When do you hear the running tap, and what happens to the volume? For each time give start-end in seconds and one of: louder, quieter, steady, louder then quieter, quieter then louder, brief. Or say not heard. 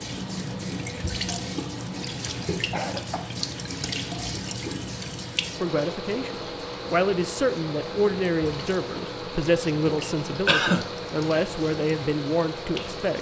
0.0-13.1 quieter.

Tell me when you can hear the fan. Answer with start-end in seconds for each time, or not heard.
0.0-13.1.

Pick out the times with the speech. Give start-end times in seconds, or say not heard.
5.6-13.1.